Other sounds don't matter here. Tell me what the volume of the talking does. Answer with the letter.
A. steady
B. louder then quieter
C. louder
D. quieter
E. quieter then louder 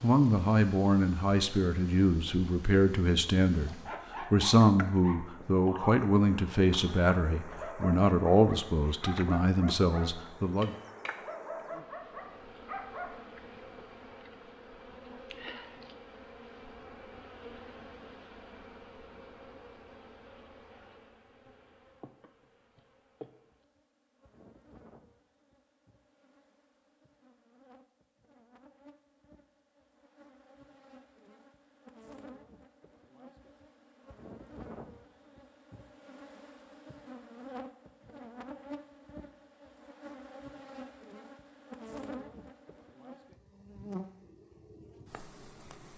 A.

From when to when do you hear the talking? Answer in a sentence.
You can hear the talking from 0.0 to 10.8 s.